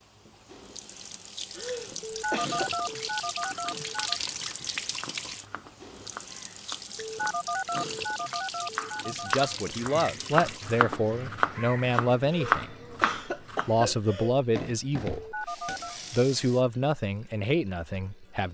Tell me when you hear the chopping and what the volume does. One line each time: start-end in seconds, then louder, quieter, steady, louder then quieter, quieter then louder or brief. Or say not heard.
3.2-13.9 louder.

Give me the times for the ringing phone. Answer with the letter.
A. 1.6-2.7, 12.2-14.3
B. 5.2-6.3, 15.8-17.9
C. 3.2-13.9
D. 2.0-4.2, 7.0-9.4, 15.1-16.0
D.